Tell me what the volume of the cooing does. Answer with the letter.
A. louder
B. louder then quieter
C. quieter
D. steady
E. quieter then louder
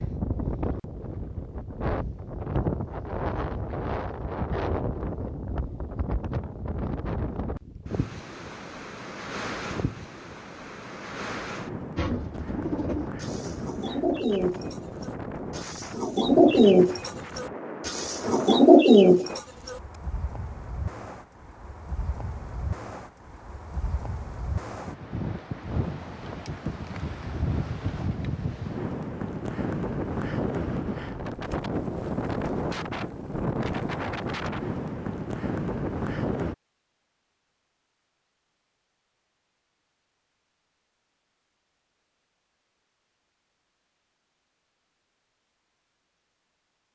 A.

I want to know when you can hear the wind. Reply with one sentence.
The wind can be heard from 0.0 to 36.5 s.